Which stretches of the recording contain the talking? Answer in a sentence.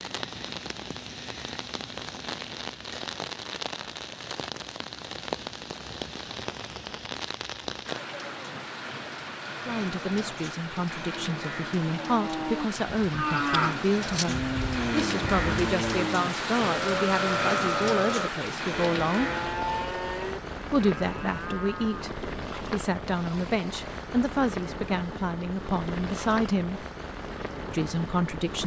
You can hear the talking from 9.7 to 19.3 s, from 20.7 to 26.9 s and from 27.7 to 28.6 s.